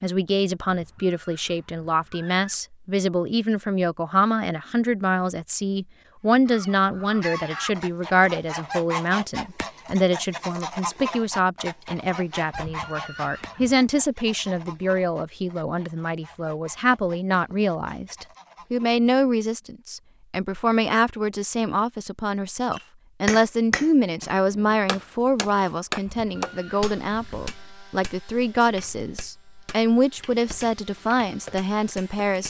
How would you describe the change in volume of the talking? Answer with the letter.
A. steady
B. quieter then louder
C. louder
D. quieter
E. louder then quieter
A.